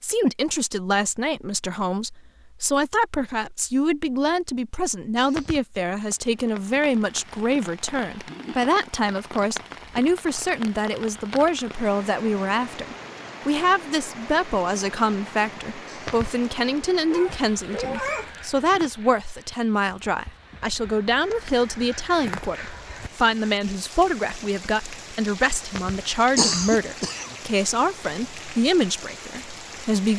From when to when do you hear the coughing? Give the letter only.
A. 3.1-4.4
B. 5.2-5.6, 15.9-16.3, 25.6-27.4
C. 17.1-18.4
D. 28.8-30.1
B.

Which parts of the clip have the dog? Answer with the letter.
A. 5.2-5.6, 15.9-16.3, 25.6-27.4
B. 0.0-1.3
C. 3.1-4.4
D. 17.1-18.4
D.